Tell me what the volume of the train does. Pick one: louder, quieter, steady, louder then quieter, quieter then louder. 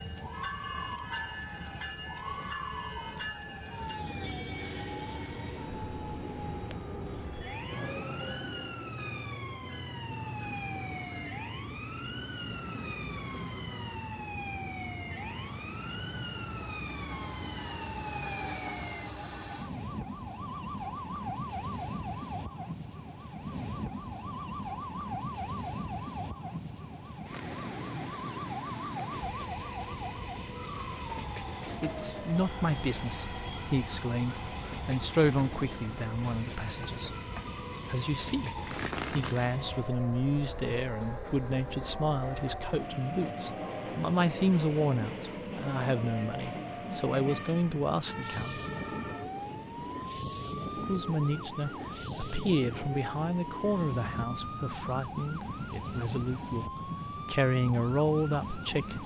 steady.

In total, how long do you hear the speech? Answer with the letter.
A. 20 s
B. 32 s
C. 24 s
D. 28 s
C.